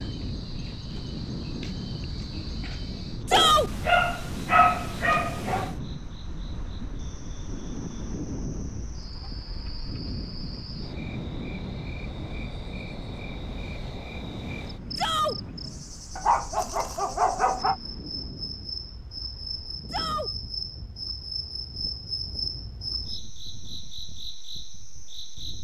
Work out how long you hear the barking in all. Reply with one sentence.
The barking can be heard for 4 seconds in total.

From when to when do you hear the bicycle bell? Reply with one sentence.
You can't hear the bicycle bell here.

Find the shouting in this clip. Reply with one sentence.
You can hear the shouting from 3.2 to 3.7 s, from 14.9 to 15.3 s and from 19.9 to 20.3 s.